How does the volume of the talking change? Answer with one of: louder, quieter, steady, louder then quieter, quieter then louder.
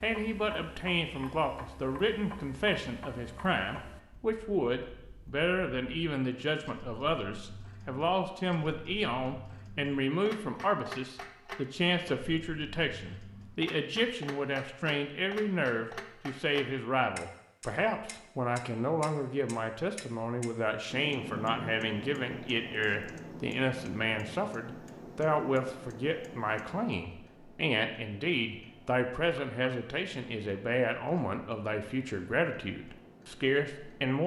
steady.